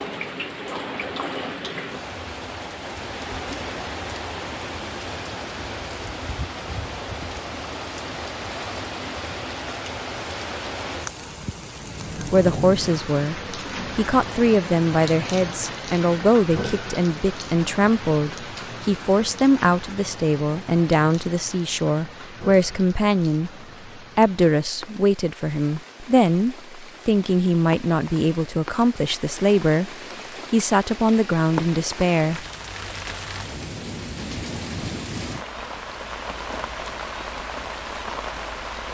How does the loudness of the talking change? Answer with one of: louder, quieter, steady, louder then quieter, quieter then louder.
steady.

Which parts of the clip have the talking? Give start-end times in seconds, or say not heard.
12.3-23.5, 24.1-32.5.